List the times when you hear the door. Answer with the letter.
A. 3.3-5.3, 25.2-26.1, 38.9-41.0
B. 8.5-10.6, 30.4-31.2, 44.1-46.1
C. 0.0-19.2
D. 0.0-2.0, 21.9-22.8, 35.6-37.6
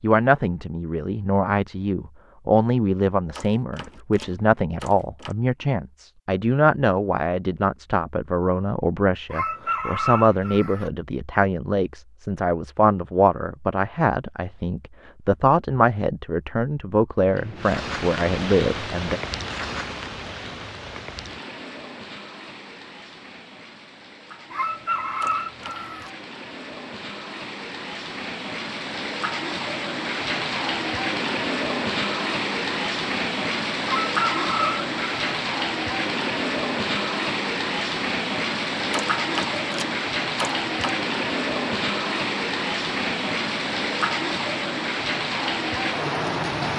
A.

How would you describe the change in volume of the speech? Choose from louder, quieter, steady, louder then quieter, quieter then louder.
steady.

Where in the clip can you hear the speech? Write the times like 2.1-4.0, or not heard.
0.0-19.2.